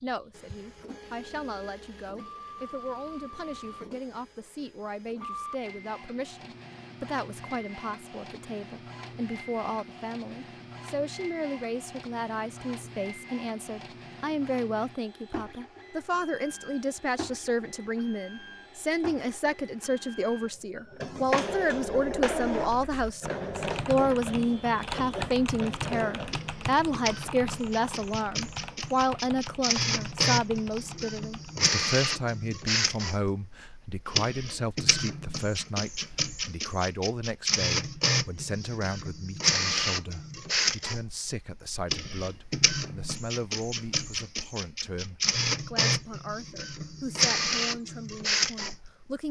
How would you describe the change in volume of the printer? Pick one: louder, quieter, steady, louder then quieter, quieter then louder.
louder.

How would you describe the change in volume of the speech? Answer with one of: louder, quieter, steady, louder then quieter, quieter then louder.
louder then quieter.